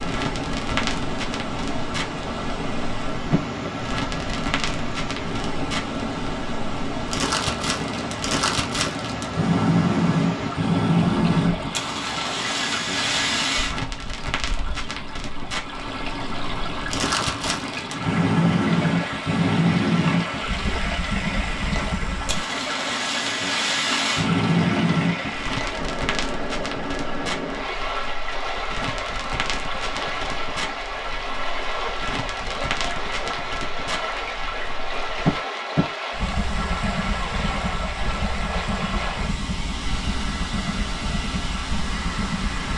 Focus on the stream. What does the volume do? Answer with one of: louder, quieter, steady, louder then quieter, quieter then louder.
steady.